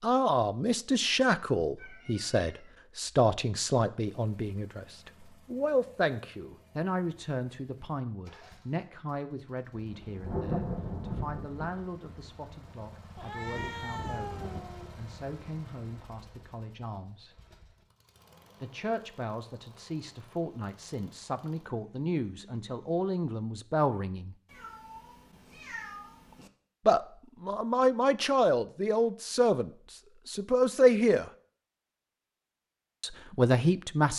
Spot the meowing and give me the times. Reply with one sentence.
The meowing can be heard from 1.8 to 2.7 s, from 13.2 to 14.9 s and from 24.5 to 26.5 s.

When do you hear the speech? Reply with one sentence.
The speech can be heard from 0.0 to 17.4 s, from 18.6 to 24.4 s, from 26.9 to 31.3 s and from 33.0 to 34.1 s.